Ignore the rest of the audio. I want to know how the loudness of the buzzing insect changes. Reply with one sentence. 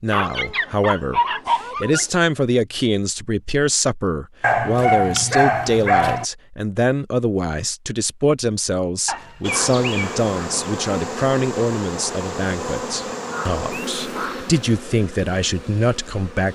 The loudness of the buzzing insect goes down.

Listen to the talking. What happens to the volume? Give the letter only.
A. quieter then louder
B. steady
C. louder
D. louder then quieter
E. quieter
B.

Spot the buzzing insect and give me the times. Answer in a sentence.
You can hear the buzzing insect from 9.4 to 16.5 s.